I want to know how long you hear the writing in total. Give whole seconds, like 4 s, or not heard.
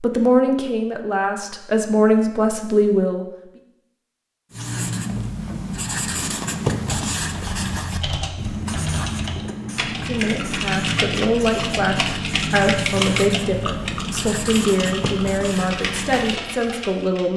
12 s.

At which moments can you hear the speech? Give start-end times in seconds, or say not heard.
0.0-3.2, 9.9-17.3.